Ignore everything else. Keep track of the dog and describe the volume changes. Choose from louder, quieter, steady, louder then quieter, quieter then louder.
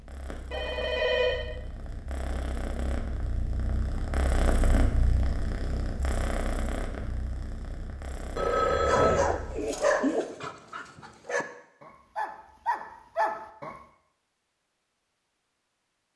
quieter then louder.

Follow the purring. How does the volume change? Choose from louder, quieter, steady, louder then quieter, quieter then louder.
louder then quieter.